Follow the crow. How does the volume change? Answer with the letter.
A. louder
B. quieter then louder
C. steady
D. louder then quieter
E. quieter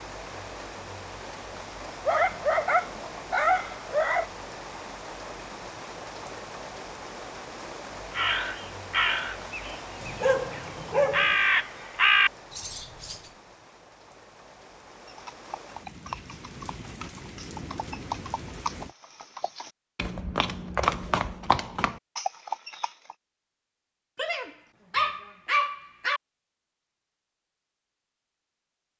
B.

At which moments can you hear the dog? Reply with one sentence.
You can hear the dog from 2.0 to 4.2 s, from 10.0 to 11.3 s and from 24.1 to 26.2 s.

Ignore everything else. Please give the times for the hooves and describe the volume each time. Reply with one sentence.
You can hear the hooves from 14.9 to 23.1 s, getting louder.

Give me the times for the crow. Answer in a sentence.
You can hear the crow from 8.1 to 13.2 s.